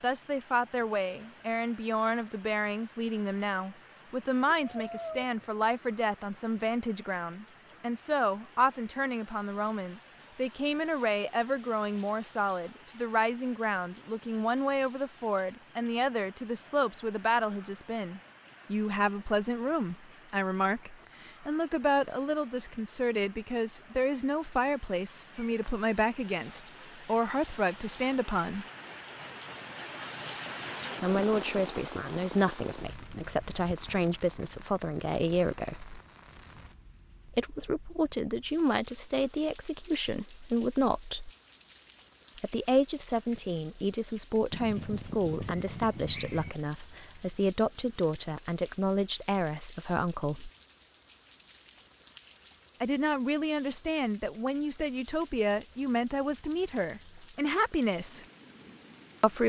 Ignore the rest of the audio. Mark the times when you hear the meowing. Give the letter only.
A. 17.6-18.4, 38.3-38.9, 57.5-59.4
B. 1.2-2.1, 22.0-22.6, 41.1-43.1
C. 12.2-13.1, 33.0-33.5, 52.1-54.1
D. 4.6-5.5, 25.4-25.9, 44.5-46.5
D.